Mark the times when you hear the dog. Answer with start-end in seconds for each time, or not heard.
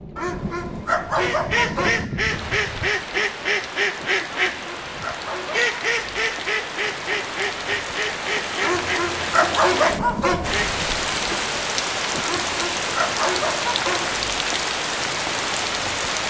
0.1-2.0, 4.3-5.7, 8.6-10.6, 12.2-14.2.